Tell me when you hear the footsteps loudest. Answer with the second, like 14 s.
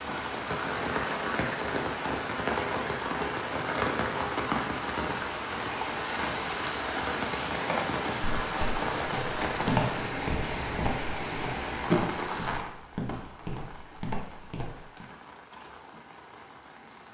10 s.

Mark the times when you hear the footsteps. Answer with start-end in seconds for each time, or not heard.
7.5-15.1.